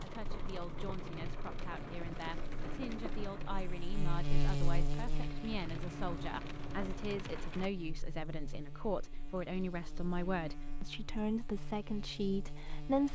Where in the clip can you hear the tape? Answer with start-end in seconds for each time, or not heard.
not heard.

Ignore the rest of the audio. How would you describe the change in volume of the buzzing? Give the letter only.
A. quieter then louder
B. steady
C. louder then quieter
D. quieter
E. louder
C.